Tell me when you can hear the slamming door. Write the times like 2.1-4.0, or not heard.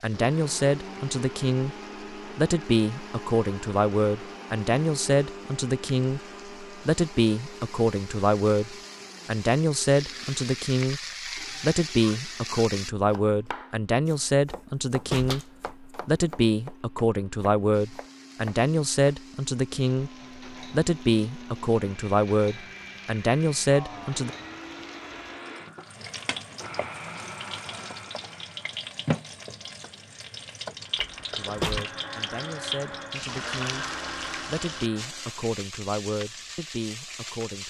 14.4-16.0, 30.9-31.9.